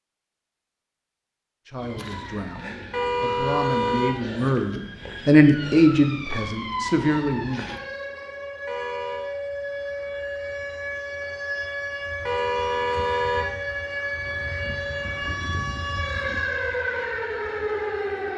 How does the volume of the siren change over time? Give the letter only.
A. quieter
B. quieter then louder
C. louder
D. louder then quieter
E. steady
C.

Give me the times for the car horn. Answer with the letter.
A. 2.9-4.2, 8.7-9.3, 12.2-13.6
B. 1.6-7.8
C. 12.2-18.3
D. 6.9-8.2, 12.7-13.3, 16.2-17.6
A.